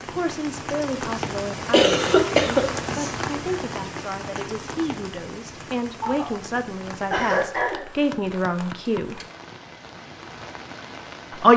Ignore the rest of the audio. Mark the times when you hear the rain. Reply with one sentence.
The rain can be heard from 0.0 to 11.5 s.